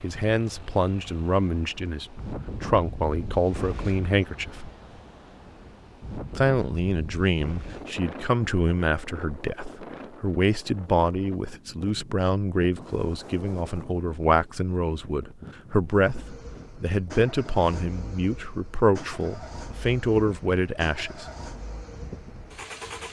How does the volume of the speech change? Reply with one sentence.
The loudness of the speech stays about the same.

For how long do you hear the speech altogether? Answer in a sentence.
You can hear the speech for 20 seconds altogether.